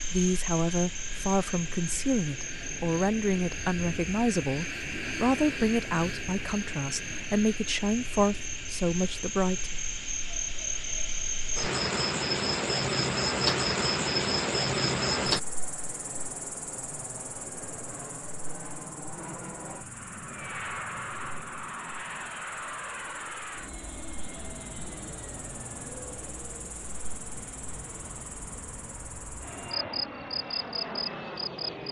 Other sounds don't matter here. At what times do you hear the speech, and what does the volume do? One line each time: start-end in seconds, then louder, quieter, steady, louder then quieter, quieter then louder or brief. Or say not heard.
0.0-9.8 steady.